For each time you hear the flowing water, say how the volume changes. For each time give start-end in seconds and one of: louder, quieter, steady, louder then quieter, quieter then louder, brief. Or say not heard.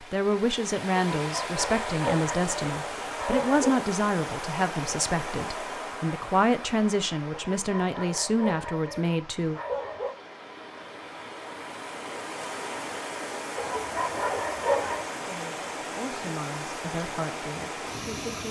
0.0-18.4 quieter then louder.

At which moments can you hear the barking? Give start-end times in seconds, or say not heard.
1.1-3.9, 7.3-10.2, 13.6-15.1.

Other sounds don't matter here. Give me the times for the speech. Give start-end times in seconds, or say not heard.
0.0-9.6, 15.2-18.4.